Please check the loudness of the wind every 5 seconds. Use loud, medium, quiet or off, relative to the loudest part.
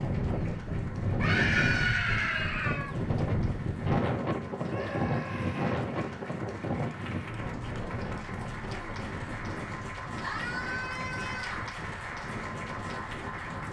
loud, loud, medium.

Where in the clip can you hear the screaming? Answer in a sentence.
You can hear the screaming from 1.1 to 2.9 s, from 4.7 to 5.8 s and from 10.2 to 11.7 s.